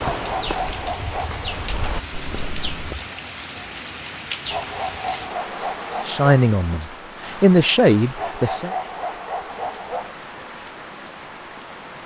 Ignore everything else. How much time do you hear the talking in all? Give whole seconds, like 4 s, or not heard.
3 s.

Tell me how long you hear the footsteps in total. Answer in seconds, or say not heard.
3 s.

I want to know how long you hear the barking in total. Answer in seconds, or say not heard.
5 s.